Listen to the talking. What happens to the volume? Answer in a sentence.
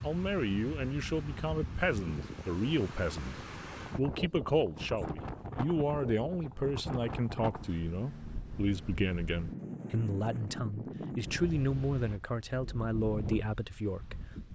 The loudness of the talking stays about the same.